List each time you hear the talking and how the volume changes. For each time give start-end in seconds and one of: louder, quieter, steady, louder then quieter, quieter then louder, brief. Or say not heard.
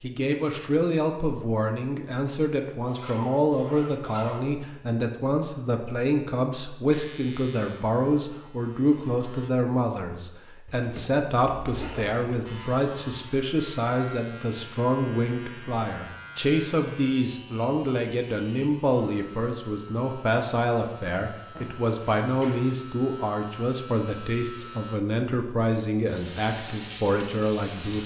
0.0-28.0 steady.